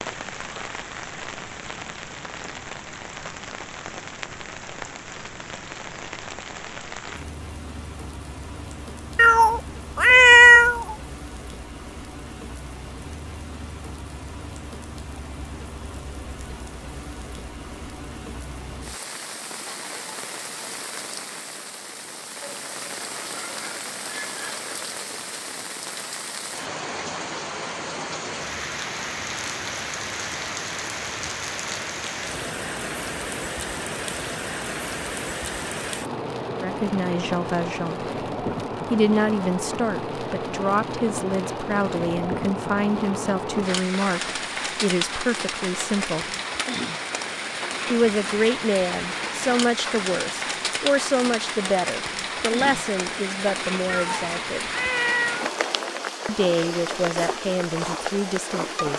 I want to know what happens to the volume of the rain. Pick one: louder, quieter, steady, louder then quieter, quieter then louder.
louder.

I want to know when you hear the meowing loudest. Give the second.
10 s.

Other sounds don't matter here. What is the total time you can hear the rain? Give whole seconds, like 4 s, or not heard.
59 s.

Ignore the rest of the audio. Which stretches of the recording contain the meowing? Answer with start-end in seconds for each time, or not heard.
9.2-10.9, 53.9-55.5.